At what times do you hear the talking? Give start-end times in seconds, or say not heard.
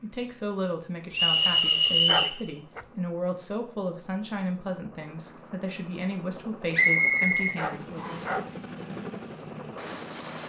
0.0-8.3.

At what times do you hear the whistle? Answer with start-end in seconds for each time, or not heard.
1.1-2.4, 6.7-8.3.